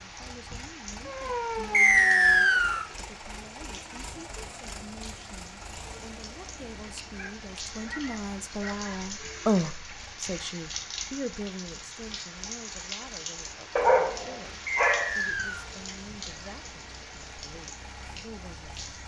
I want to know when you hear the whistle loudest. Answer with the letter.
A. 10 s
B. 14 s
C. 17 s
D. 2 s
D.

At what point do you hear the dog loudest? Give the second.
14 s.